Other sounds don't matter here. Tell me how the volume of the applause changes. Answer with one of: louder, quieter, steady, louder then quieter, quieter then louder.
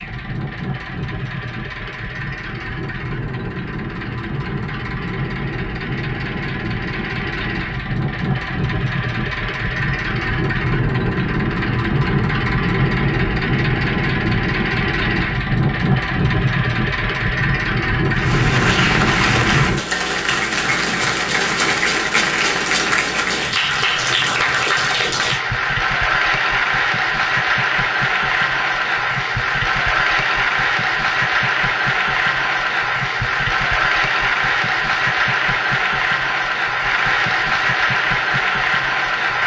steady.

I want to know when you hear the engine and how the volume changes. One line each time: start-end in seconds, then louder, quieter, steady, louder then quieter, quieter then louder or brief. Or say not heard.
0.0-19.8 louder.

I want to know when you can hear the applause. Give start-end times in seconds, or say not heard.
18.1-39.4.